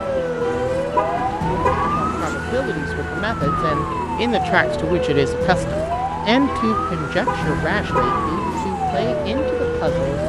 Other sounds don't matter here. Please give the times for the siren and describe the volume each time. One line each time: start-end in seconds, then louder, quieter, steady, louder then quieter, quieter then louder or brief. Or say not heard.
0.0-10.2 steady.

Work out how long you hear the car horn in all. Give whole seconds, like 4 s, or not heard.
3 s.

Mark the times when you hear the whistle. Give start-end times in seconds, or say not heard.
not heard.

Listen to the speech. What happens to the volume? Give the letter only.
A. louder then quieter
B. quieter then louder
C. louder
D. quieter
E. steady
A.